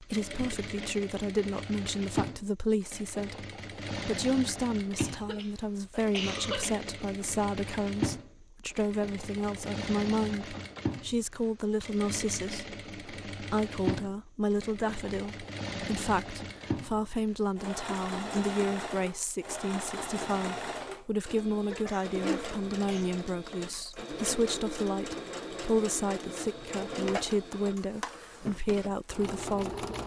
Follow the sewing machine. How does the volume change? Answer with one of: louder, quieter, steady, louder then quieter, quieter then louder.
steady.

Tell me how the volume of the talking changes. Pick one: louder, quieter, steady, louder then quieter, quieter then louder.
steady.